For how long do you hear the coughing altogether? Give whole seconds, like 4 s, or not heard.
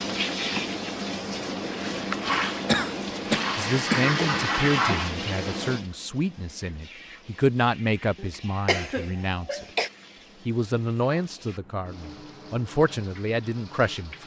3 s.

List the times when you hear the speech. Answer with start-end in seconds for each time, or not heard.
3.5-9.7, 10.4-14.2.